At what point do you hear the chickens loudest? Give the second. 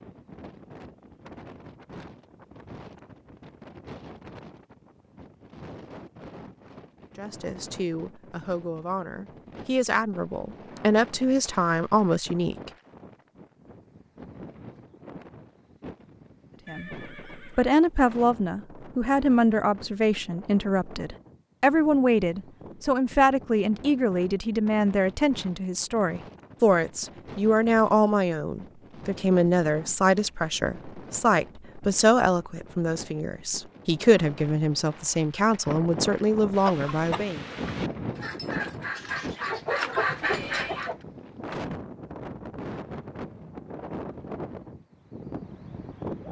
40 s.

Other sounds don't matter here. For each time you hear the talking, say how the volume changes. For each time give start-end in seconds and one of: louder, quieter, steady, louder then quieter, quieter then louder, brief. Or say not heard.
7.2-12.7 louder
16.6-37.5 steady.